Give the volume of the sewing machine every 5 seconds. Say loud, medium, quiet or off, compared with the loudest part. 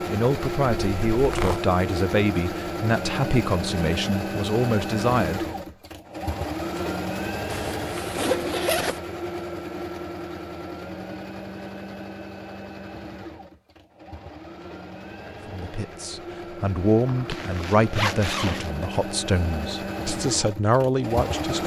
loud, loud, medium, medium, loud.